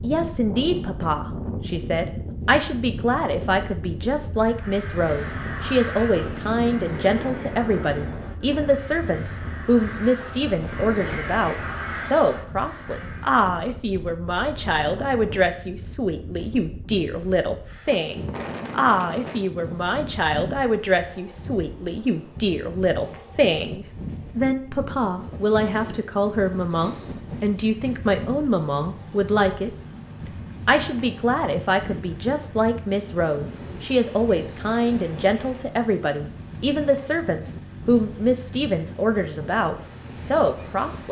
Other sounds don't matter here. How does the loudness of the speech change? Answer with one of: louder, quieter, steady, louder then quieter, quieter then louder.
steady.